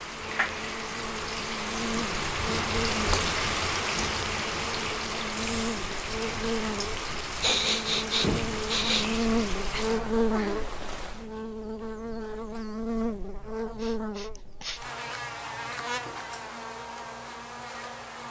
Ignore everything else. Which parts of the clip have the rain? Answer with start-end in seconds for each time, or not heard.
0.0-11.3.